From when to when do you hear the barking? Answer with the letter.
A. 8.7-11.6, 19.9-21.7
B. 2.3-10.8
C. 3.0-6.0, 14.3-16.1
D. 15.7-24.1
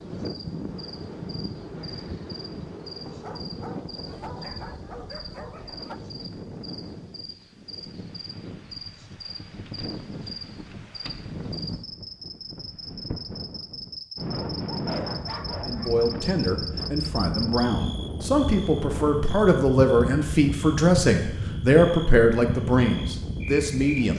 C.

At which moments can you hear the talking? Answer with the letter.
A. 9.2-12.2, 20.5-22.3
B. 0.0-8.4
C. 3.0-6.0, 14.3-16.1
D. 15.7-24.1
D.